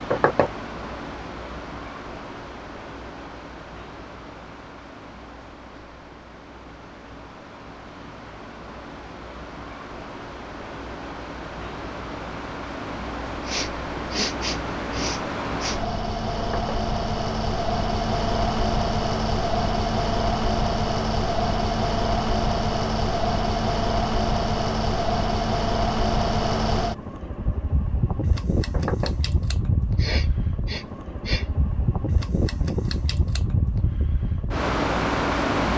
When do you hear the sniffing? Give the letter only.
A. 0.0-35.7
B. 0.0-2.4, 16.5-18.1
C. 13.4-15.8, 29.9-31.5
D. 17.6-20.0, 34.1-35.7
C.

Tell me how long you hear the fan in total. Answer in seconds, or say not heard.
36 s.